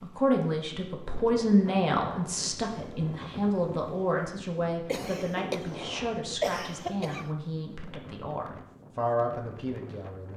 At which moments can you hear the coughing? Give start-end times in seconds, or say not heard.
4.8-7.3.